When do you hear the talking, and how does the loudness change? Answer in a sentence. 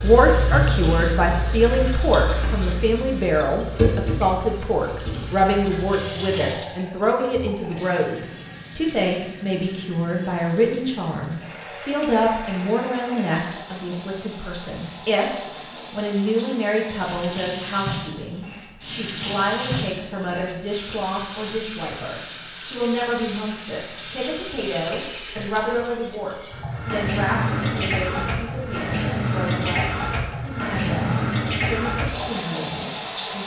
You can hear the talking from 0.0 to 33.4 s, getting quieter.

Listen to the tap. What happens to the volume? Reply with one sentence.
The volume of the tap goes down, then up.